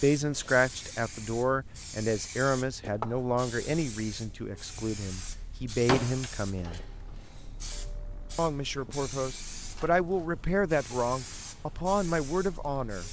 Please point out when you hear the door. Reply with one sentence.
The door can be heard from 5.8 to 7.1 s.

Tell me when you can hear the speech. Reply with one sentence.
The speech can be heard from 0.0 to 6.8 s and from 8.3 to 13.0 s.